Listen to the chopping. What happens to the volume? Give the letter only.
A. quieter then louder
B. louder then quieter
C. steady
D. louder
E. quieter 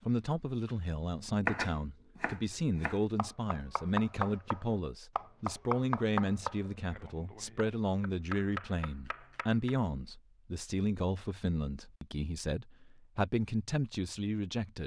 B.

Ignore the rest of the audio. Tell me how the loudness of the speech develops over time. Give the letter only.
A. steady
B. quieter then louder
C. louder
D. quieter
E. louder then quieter
A.